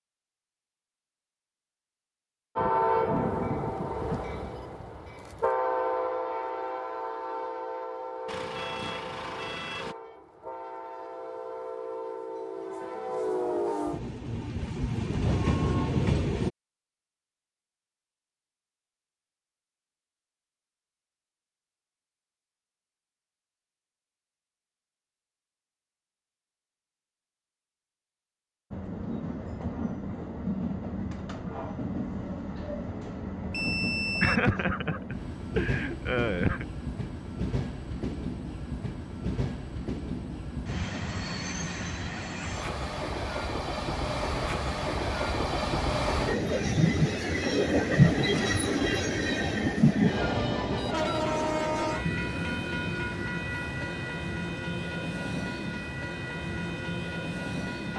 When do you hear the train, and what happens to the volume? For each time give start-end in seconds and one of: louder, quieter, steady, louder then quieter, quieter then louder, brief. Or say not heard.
2.5-16.5 quieter then louder
28.7-57.9 louder then quieter.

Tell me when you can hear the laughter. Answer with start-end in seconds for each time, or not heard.
34.2-36.6.